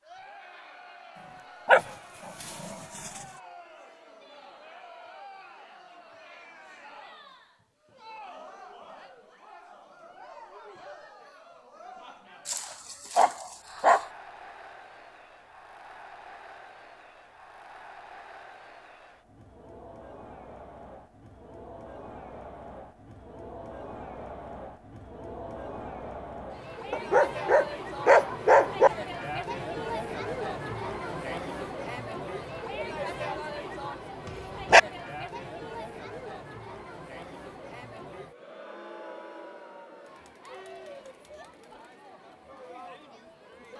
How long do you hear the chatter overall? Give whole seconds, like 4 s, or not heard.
44 s.